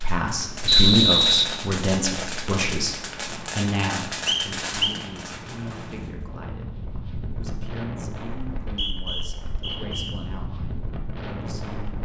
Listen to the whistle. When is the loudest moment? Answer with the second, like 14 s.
1 s.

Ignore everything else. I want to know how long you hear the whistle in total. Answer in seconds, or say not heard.
4 s.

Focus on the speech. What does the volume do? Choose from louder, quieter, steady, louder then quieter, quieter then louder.
quieter.